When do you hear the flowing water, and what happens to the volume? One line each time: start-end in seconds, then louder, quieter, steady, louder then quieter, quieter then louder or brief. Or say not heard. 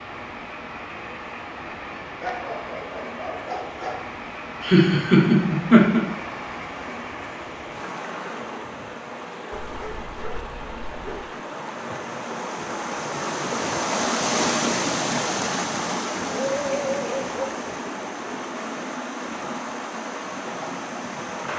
0.0-21.5 louder then quieter.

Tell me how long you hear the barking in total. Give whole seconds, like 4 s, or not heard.
5 s.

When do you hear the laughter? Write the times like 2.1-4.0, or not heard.
4.6-6.0.